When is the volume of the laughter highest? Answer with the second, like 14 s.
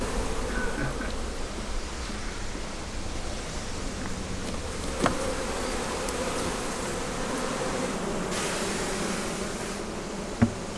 1 s.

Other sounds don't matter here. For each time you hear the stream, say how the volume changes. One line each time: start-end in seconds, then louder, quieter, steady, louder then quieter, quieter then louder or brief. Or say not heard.
0.0-10.7 steady.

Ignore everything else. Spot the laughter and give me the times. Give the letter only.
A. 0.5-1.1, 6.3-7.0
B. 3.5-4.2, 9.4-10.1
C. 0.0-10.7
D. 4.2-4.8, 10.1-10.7
A.